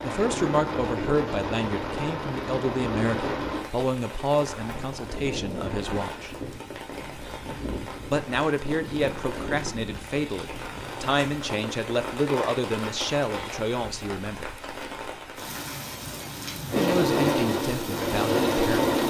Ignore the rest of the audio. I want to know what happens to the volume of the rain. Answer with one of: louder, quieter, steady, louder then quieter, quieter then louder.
steady.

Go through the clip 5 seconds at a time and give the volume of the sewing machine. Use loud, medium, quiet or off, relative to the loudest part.
medium, off, off, loud.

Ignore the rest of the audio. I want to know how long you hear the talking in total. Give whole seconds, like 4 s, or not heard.
15 s.